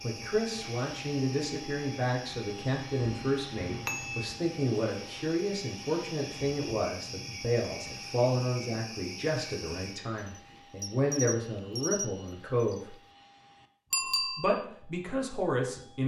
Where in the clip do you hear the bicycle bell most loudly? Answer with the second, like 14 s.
14 s.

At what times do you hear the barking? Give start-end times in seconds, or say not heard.
not heard.